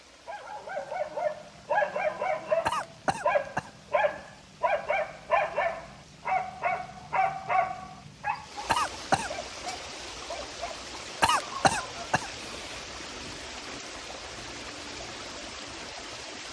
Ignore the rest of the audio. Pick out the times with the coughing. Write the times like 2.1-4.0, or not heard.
2.6-3.7, 8.7-9.3, 11.2-12.8.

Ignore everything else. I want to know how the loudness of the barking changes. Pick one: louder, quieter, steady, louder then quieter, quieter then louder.
quieter.